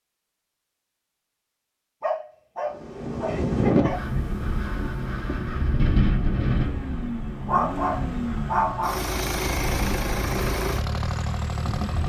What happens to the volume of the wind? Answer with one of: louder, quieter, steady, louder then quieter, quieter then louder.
quieter.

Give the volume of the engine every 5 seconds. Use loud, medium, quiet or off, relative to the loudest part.
off, loud, loud.